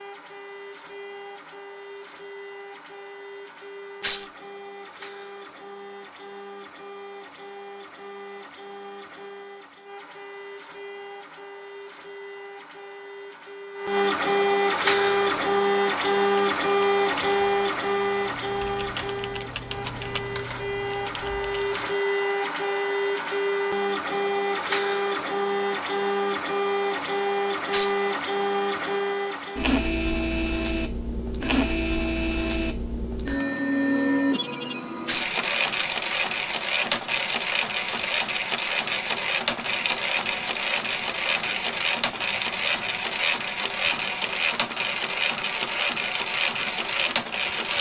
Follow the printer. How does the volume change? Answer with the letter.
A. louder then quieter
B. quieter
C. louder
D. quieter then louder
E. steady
C.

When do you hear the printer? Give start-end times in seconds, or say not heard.
0.0-47.7.